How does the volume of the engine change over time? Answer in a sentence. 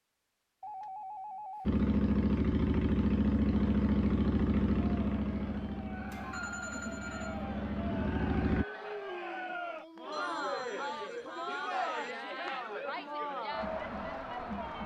The loudness of the engine goes down, then up.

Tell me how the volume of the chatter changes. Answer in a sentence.
The loudness of the chatter goes up.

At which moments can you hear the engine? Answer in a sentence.
You can hear the engine from 1.6 to 8.7 s.